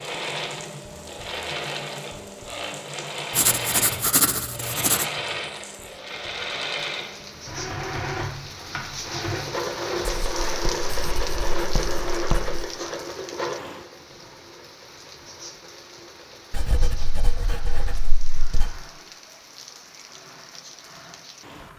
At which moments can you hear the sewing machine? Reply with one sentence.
You can hear the sewing machine from 0.0 to 21.7 s.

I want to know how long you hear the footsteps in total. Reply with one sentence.
The footsteps can't be heard in this clip.